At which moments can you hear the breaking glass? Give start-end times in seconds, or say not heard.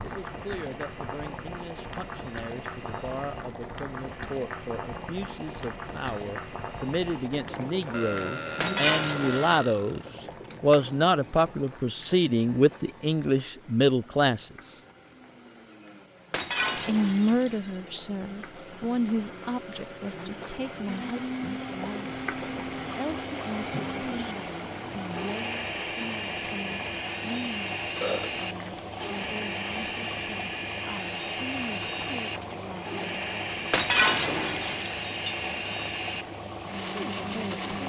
8.6-9.7, 16.3-17.8, 33.7-35.5.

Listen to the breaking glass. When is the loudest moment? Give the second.
34 s.